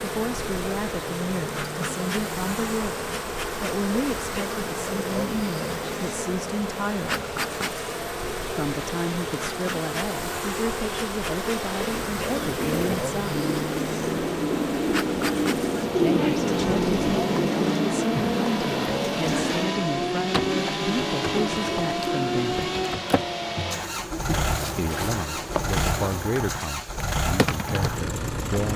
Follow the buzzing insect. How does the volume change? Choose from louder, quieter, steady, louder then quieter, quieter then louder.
steady.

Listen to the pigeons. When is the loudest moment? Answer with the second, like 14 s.
16 s.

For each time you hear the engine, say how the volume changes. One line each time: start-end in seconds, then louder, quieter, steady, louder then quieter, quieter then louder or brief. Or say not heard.
0.0-28.7 louder.